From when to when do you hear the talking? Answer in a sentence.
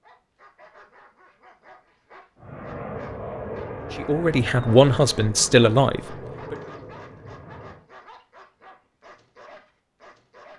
You can hear the talking from 4.0 to 6.5 s.